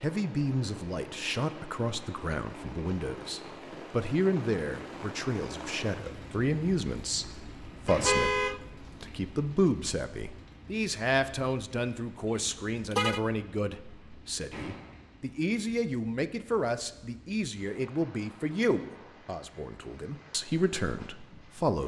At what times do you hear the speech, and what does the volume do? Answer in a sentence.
You can hear the speech from 0.0 to 21.8 s, at a steady volume.